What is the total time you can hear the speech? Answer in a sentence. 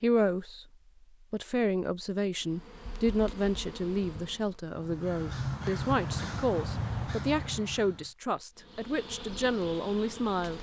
The speech can be heard for 10 seconds in total.